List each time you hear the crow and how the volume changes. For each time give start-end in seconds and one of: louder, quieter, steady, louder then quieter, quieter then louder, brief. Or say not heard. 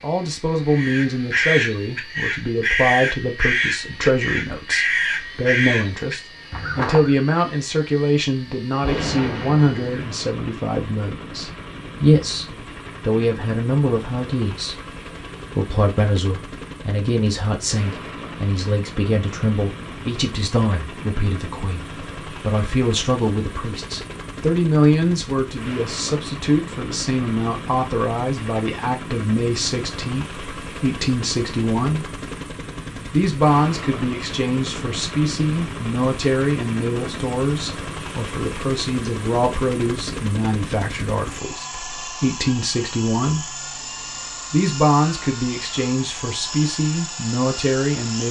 0.7-7.2 steady.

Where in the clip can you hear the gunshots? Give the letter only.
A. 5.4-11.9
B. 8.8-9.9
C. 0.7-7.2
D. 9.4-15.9
B.